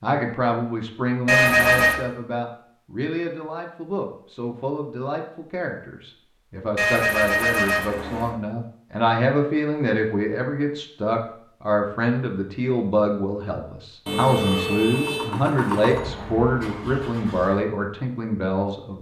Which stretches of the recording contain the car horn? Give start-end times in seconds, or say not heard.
1.2-2.0, 6.8-8.3, 14.1-15.3.